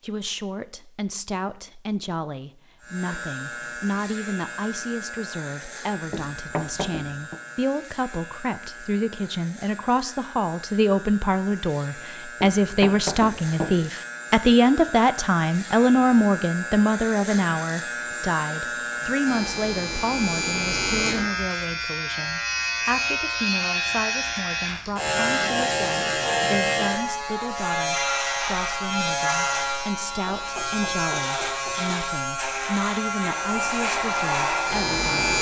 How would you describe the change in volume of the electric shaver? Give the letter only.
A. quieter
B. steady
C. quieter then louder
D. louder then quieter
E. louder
E.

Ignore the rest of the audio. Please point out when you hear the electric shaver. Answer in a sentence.
The electric shaver can be heard from 2.8 to 35.3 s.